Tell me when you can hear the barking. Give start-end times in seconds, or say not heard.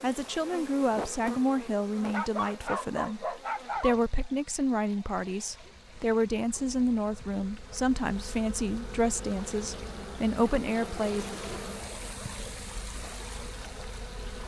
2.1-4.0.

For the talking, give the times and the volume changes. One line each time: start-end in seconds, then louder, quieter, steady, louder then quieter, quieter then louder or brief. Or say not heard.
0.0-11.2 steady.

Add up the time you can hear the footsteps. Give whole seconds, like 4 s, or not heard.
not heard.